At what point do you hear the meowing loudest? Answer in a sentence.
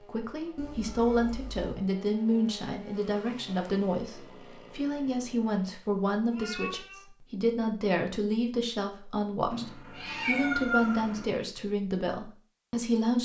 The volume of the meowing peaks at 11 seconds.